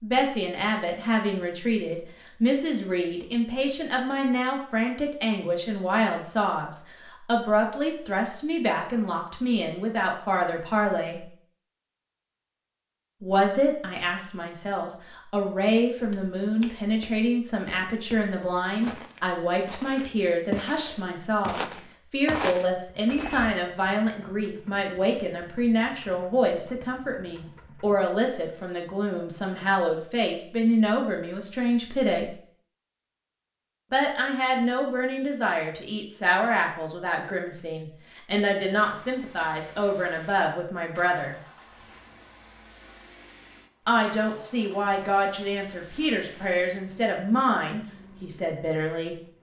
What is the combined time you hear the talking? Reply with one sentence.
You can hear the talking for 43 seconds altogether.